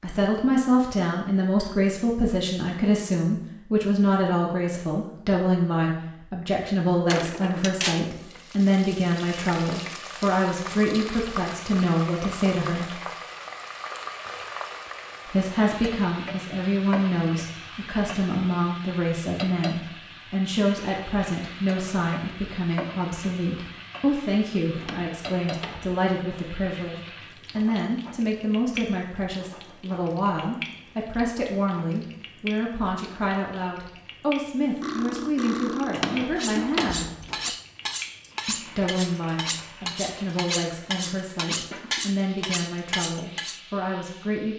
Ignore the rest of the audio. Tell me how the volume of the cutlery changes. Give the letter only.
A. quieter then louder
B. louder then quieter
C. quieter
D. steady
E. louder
D.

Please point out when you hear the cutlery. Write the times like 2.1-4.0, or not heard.
34.8-43.6.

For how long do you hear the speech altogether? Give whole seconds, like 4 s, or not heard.
41 s.